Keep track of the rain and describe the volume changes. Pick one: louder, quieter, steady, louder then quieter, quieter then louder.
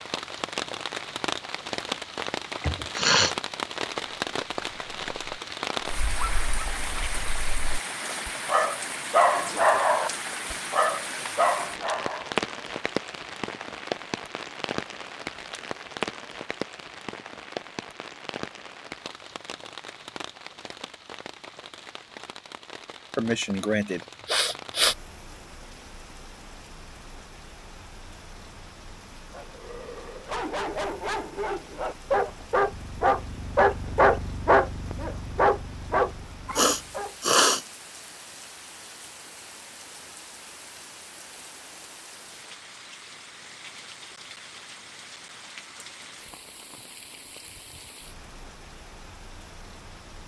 quieter.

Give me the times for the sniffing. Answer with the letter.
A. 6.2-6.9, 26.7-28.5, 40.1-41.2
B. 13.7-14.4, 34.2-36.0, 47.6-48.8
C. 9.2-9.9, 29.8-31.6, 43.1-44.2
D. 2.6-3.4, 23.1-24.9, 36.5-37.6
D.